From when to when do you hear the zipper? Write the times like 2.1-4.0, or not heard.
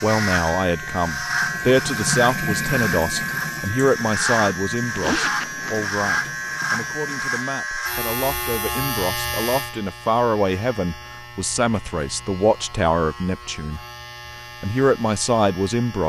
5.0-5.9.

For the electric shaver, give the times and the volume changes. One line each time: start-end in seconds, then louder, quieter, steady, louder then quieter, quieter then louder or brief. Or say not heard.
0.0-16.0 quieter.